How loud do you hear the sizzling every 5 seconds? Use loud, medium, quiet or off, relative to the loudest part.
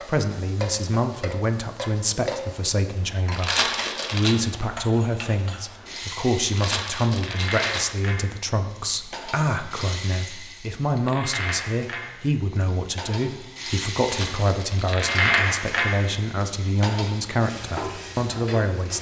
medium, medium, medium, loud.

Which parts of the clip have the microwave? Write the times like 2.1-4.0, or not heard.
not heard.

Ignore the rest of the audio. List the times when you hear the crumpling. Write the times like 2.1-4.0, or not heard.
3.3-4.3, 6.5-7.8, 14.0-15.3.